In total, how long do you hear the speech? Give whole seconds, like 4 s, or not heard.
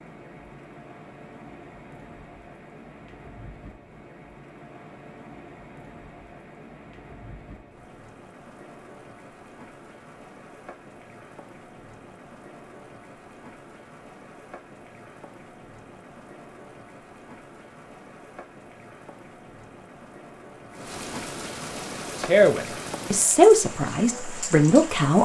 3 s.